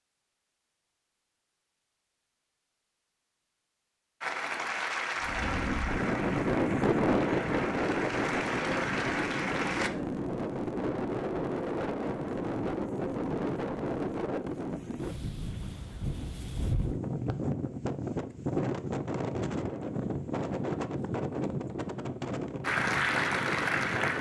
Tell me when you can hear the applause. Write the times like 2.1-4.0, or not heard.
4.2-9.9, 22.6-24.1.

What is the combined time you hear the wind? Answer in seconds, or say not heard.
19 s.